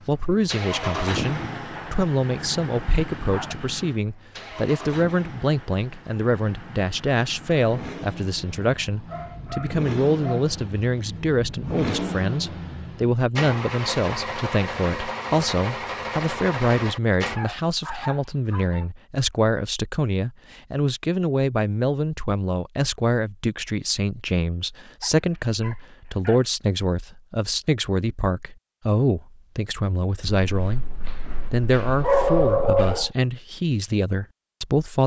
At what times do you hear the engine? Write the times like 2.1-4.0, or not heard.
0.0-17.4.